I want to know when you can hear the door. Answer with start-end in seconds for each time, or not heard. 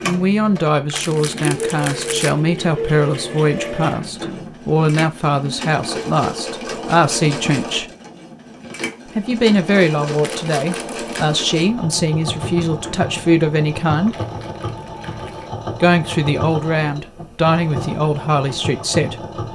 4.0-4.7, 12.6-13.1.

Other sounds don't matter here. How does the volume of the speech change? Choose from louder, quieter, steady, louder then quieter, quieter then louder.
steady.